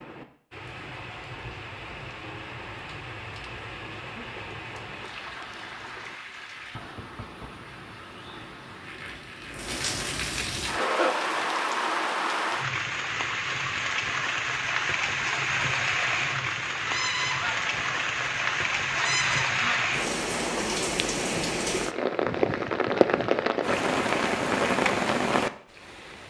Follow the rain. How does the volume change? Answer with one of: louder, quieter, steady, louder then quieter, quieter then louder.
louder.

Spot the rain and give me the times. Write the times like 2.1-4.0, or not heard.
0.0-26.2.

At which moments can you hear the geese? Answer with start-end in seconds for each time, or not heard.
16.9-19.9.